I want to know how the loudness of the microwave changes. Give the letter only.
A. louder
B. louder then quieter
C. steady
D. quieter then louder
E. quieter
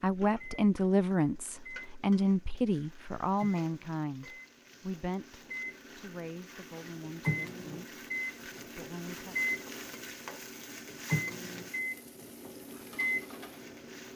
A.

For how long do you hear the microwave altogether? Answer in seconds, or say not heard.
14 s.